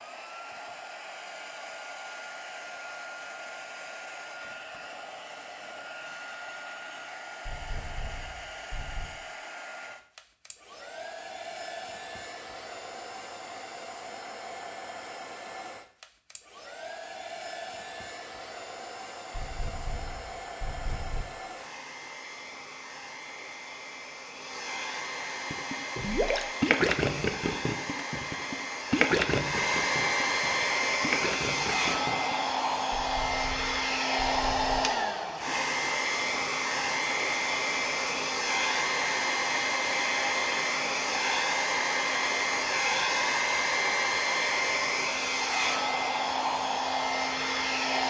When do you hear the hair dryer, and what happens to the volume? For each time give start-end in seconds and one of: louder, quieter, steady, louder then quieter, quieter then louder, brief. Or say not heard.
0.0-48.0 louder.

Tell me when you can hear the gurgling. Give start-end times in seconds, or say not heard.
25.5-32.5.